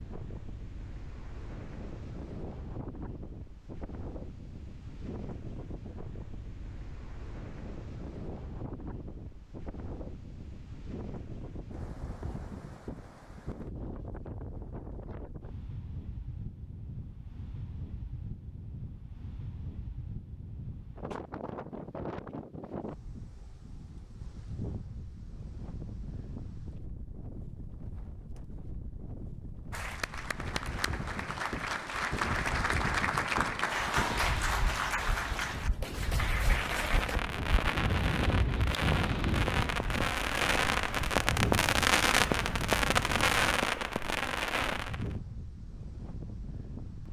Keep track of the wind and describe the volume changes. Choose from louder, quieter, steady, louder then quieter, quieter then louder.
louder.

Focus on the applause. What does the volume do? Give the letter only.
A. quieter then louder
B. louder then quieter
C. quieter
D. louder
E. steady
B.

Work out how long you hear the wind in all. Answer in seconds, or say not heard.
47 s.